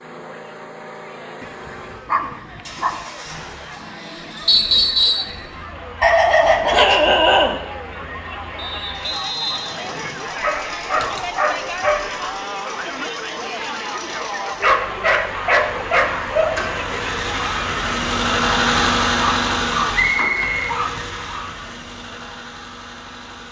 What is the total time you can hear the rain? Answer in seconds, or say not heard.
not heard.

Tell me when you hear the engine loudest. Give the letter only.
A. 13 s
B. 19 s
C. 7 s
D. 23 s
B.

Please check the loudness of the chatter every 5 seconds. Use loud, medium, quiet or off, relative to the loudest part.
quiet, medium, loud, loud, off.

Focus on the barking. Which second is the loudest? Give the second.
7 s.